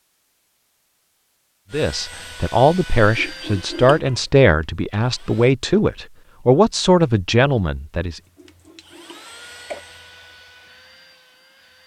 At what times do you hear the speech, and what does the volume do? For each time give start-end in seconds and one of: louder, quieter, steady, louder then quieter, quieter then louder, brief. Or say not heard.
1.7-8.2 steady.